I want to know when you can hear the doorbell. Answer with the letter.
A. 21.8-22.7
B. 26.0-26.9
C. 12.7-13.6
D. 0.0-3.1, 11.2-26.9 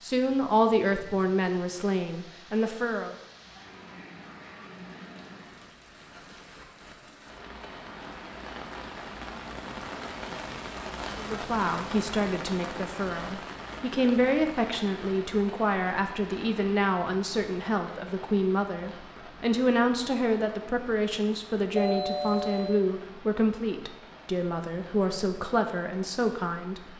A.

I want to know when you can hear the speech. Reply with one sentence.
The speech can be heard from 0.0 to 3.1 s and from 11.2 to 26.9 s.